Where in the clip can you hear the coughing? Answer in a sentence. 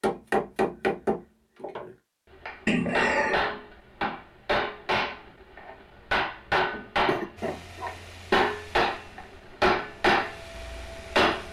The coughing can be heard from 2.6 to 3.5 s and from 7.0 to 8.5 s.